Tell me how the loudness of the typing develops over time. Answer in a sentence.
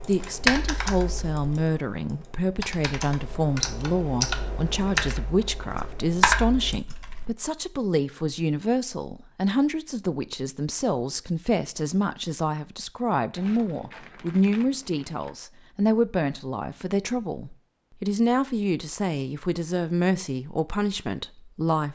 The volume of the typing goes down, then up.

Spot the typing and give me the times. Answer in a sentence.
You can hear the typing from 0.0 to 7.3 s.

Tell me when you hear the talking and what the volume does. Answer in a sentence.
You can hear the talking from 0.1 to 21.9 s, at a steady volume.